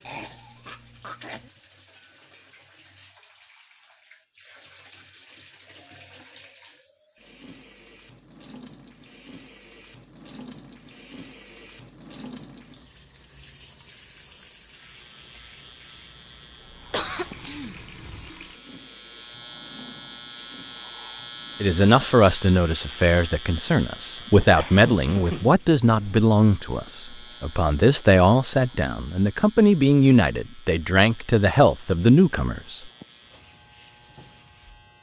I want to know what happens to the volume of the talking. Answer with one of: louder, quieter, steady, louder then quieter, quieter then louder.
steady.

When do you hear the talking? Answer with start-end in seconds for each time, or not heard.
21.6-32.9.